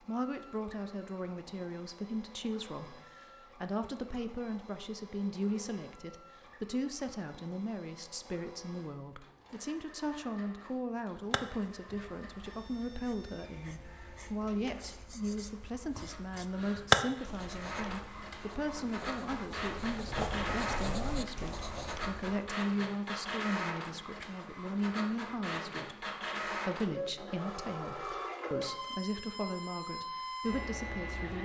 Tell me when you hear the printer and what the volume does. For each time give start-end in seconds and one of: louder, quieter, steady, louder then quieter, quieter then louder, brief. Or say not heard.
0.0-31.3 louder.